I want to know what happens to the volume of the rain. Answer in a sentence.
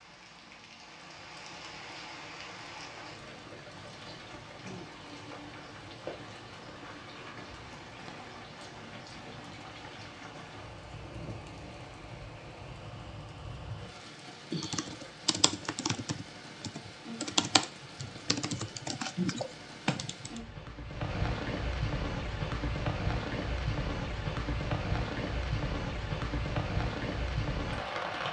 The loudness of the rain goes up.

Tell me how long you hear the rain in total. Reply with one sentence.
You can hear the rain for 28 seconds altogether.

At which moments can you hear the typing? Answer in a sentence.
You can hear the typing from 14.5 to 20.4 s.